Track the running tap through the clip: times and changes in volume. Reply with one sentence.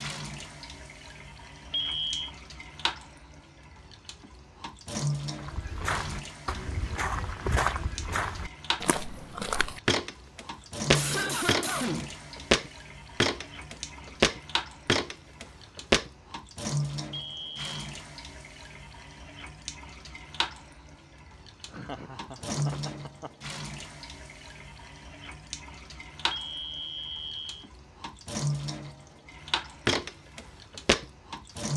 The running tap can be heard from 0.0 to 31.7 s, at a steady volume.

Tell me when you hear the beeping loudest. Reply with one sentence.
The loudest moment of the beeping is at 2 seconds.